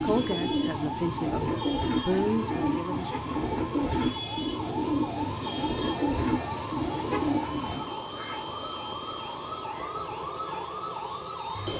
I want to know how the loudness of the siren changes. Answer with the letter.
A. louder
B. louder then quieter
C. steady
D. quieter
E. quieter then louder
C.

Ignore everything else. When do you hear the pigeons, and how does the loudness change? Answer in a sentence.
You can hear the pigeons from 0.0 to 8.0 s, at a steady volume.